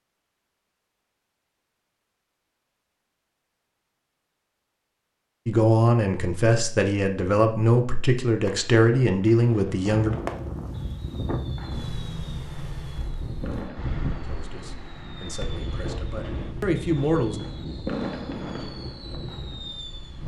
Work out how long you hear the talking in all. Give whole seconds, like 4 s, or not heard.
8 s.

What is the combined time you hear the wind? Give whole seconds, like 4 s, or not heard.
10 s.